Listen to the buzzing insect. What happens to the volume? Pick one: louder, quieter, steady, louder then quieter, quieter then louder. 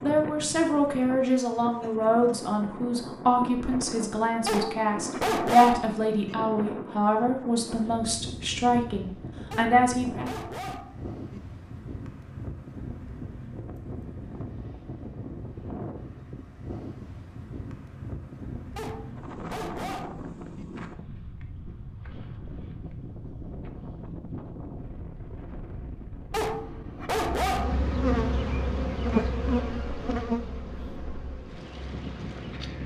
quieter.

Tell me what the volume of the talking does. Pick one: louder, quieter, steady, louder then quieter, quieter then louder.
steady.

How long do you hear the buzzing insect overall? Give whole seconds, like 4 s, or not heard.
6 s.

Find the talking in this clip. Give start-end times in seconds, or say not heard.
0.0-10.3.